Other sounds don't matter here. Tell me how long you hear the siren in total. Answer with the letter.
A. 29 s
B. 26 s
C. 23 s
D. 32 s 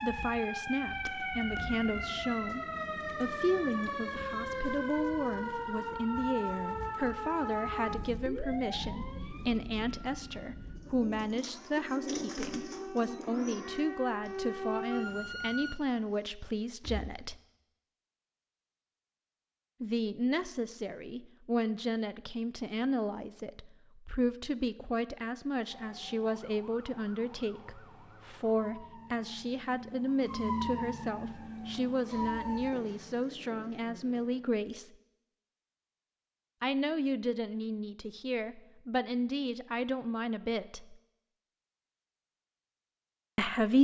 C.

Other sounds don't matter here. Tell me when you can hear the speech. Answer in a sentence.
The speech can be heard from 0.0 to 17.4 s, from 19.8 to 34.9 s, from 36.6 to 41.0 s and from 43.4 to 43.8 s.